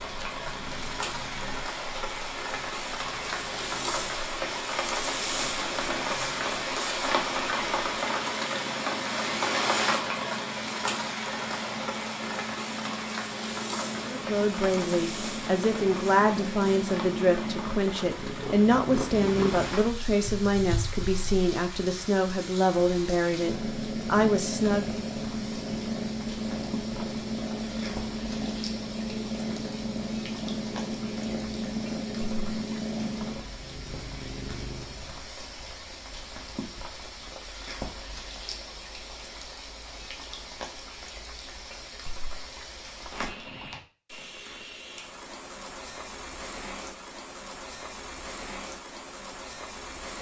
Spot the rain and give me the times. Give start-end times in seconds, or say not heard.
0.0-50.1.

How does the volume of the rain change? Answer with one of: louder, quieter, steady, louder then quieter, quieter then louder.
quieter.